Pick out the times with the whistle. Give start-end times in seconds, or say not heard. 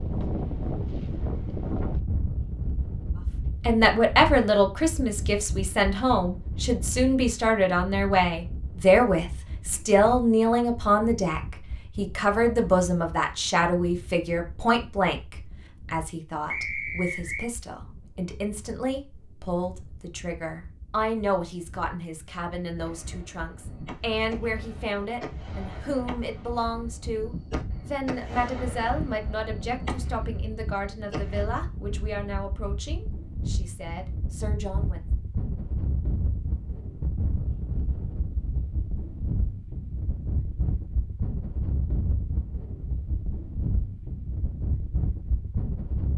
16.4-17.5.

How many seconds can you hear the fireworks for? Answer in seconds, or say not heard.
9 s.